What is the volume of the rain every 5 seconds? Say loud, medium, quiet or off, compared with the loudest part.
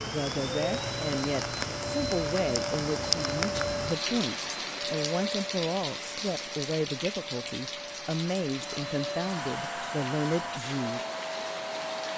loud, medium, medium.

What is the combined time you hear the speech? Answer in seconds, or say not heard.
11 s.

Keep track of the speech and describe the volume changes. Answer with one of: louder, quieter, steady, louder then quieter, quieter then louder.
steady.